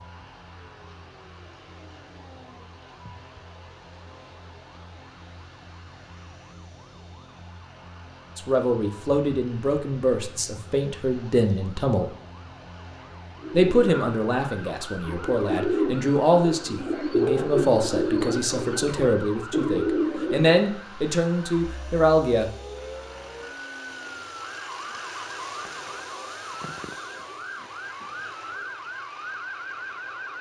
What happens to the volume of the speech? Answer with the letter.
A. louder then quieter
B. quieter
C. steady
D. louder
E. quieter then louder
C.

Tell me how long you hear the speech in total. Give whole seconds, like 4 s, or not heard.
13 s.